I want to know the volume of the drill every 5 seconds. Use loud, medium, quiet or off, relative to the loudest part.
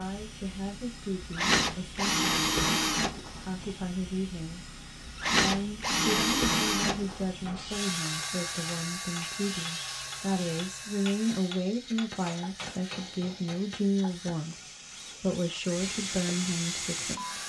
loud, loud, quiet, medium.